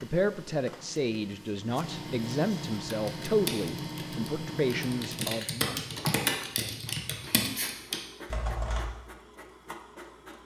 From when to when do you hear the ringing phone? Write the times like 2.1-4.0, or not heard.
not heard.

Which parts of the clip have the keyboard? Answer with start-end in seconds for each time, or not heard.
2.9-8.8.